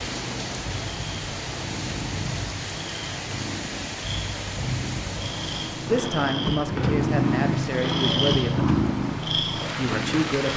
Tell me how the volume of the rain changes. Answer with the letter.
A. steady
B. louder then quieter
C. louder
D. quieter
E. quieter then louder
A.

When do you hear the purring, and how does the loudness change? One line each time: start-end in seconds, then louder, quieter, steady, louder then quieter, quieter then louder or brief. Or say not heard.
0.0-10.5 louder.